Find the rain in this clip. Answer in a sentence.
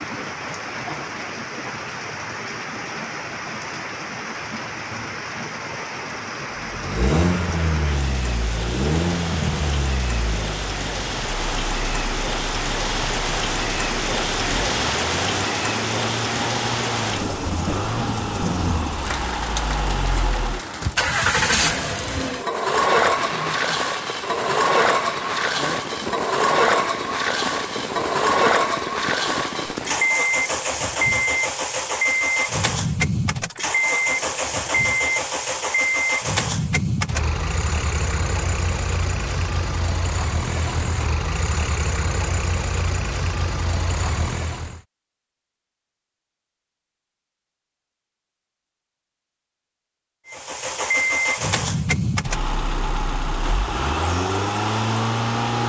The rain can be heard from 0.0 to 30.1 s.